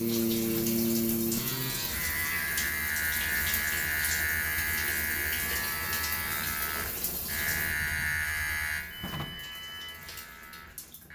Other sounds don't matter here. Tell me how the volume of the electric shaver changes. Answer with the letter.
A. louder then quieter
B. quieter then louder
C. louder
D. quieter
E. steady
D.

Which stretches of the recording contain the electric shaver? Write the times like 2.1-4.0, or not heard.
0.0-11.1.